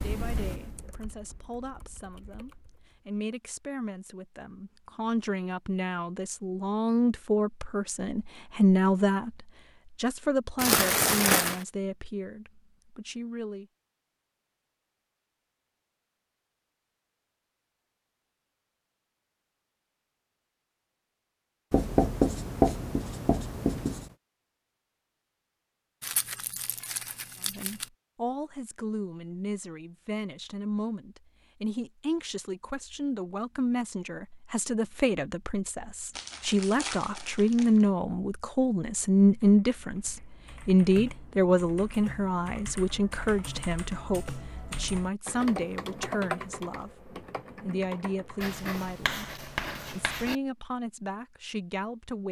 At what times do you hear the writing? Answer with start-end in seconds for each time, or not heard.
21.7-24.1, 48.4-50.4.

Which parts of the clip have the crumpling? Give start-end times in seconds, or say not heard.
10.6-11.7, 26.0-27.9, 36.1-37.9.